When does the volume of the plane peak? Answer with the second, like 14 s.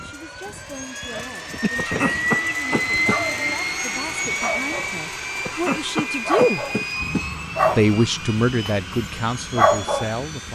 3 s.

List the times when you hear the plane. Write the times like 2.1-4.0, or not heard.
0.0-10.5.